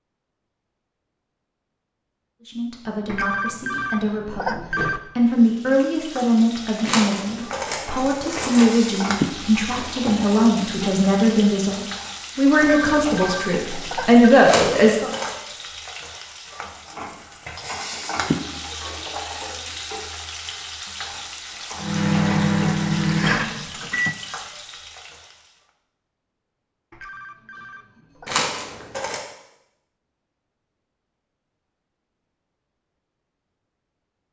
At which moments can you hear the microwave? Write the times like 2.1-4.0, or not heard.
21.8-24.1.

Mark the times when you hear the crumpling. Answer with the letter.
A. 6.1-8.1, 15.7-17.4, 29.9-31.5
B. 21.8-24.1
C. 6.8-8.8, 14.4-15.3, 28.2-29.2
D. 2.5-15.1
C.